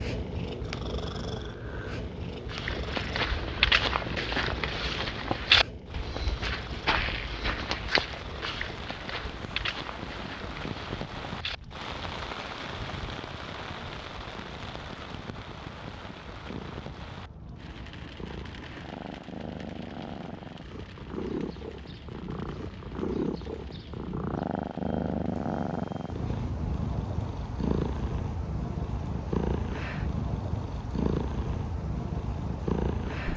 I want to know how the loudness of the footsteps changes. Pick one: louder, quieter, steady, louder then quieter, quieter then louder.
quieter.